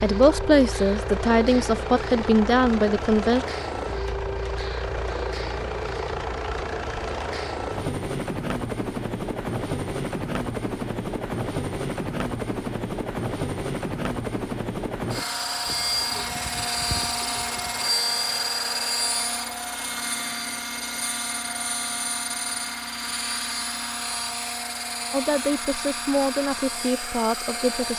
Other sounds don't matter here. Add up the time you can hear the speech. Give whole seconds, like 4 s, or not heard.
6 s.